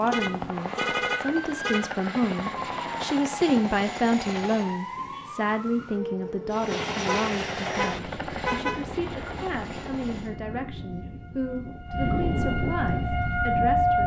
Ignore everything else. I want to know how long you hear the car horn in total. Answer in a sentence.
The car horn can be heard for 4 seconds in total.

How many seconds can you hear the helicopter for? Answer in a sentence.
The helicopter can be heard for 9 seconds in total.